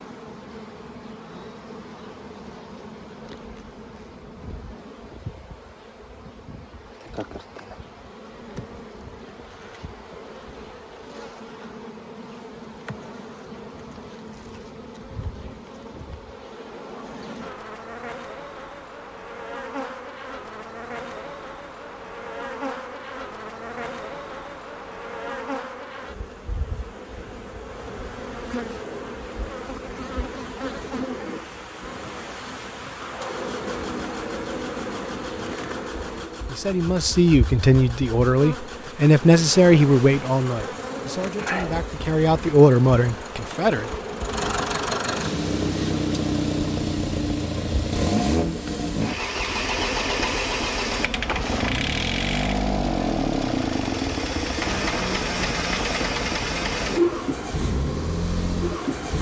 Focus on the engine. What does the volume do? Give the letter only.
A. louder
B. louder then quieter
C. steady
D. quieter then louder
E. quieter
A.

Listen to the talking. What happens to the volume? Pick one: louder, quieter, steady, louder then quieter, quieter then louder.
quieter then louder.